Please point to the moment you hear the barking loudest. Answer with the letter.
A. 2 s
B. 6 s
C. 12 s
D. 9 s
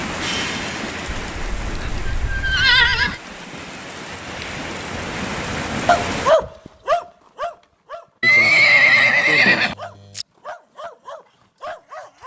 B.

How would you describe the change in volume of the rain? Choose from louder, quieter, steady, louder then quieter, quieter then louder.
quieter then louder.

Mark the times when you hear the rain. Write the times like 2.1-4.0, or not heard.
0.0-6.3.